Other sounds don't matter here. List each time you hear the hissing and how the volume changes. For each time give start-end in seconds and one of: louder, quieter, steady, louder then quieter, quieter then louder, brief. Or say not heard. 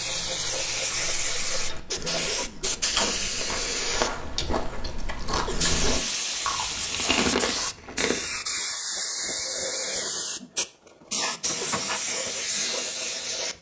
0.0-13.5 steady.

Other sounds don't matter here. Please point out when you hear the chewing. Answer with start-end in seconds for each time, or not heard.
1.6-8.6.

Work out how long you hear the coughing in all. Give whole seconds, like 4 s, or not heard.
3 s.